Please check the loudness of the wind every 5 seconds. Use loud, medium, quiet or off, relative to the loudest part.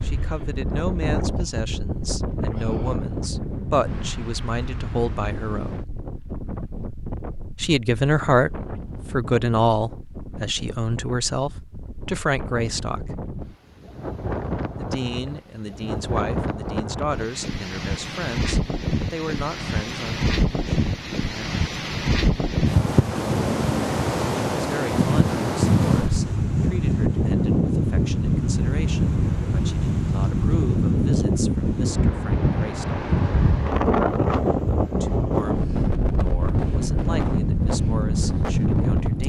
medium, quiet, quiet, medium, loud, loud, loud, loud.